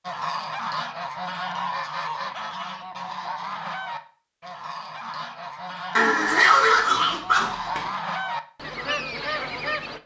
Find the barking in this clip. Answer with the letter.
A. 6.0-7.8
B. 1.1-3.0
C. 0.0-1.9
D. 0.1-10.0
A.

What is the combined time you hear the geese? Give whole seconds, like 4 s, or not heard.
10 s.